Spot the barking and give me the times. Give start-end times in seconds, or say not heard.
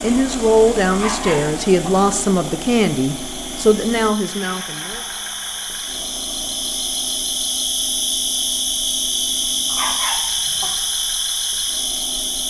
0.9-1.9, 9.7-10.7.